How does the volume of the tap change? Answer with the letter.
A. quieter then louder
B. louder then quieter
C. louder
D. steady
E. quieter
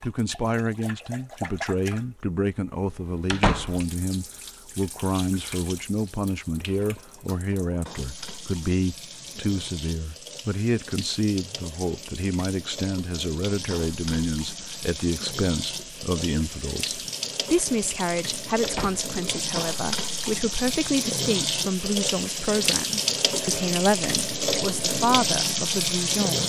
C.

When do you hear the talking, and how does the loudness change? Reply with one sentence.
You can hear the talking from 0.0 to 26.4 s, at a steady volume.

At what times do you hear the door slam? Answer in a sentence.
You can hear the door slam from 3.3 to 3.8 s and from 18.6 to 19.1 s.